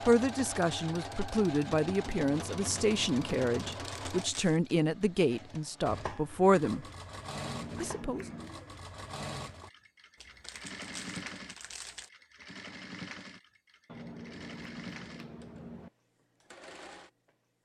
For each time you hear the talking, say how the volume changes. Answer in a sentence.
The talking can be heard from 0.0 to 6.8 s, at a steady volume; and briefly from 7.8 to 8.3 s.